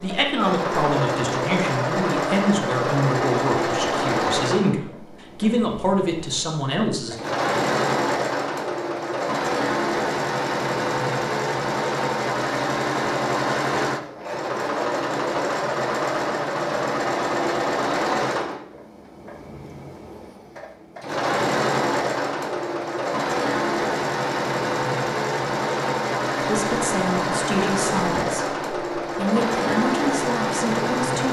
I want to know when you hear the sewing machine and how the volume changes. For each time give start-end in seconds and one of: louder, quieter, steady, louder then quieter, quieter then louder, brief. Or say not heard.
0.0-31.2 steady.